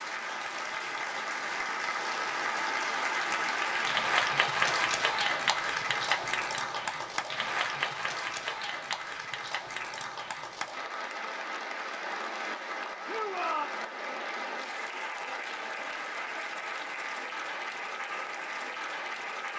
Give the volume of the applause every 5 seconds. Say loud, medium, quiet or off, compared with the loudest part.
loud, loud, medium, medium.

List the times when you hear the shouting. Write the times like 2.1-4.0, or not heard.
13.1-13.7.